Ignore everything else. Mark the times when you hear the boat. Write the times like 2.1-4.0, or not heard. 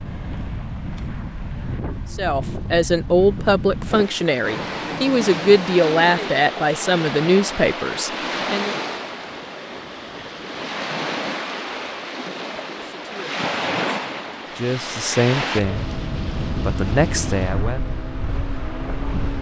15.6-19.3.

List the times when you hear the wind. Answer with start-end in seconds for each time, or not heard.
0.0-19.3.